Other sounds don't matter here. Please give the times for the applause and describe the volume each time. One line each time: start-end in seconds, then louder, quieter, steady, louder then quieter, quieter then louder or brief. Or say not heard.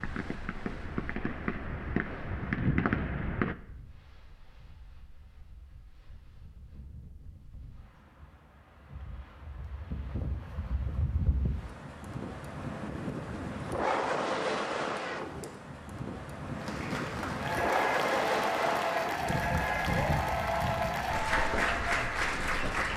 16.6-22.9 steady.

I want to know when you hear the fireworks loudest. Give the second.
3 s.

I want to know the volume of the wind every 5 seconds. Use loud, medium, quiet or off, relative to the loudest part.
quiet, quiet, loud, loud, medium.